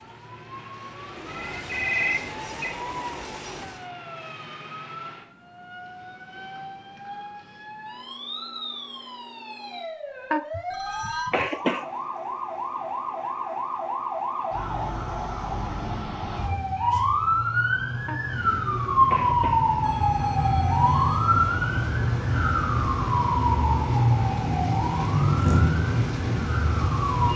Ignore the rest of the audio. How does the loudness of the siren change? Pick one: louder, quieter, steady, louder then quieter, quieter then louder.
louder.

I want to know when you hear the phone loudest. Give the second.
2 s.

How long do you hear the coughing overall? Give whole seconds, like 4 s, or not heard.
3 s.